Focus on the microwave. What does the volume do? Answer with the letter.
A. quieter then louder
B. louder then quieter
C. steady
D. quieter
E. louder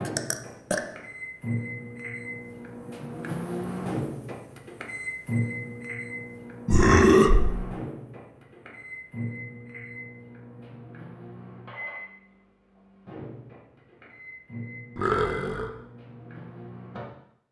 D.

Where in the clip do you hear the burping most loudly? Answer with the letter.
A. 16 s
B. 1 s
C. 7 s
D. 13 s
C.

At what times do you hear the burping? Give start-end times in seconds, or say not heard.
0.1-0.8, 6.7-7.5, 14.9-15.7.